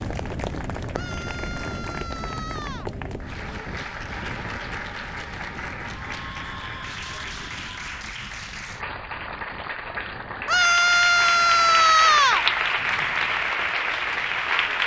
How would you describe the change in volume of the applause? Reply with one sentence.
The volume of the applause goes up.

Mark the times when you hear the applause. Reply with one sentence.
You can hear the applause from 0.0 to 14.8 s.